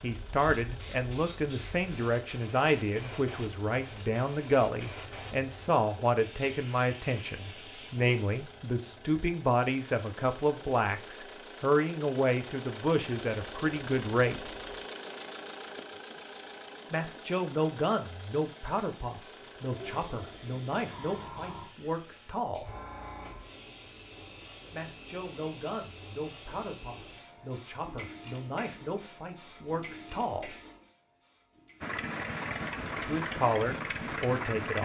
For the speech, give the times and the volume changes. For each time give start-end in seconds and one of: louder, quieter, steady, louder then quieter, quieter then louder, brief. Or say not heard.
0.0-14.5 steady
16.9-22.8 quieter
24.7-30.6 steady
33.0-34.7 brief.